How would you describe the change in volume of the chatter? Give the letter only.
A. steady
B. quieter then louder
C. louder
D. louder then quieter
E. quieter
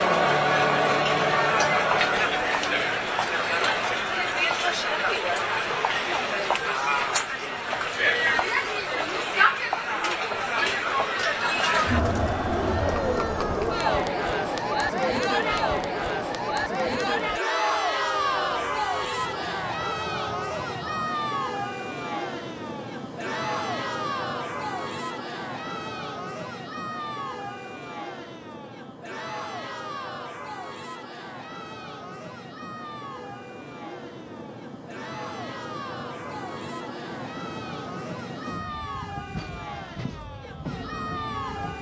E.